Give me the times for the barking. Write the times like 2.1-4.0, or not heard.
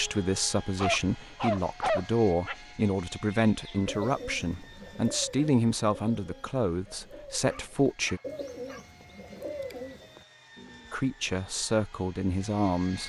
0.8-2.5, 6.8-8.8.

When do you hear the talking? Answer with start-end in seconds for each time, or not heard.
0.0-8.2, 10.9-13.0.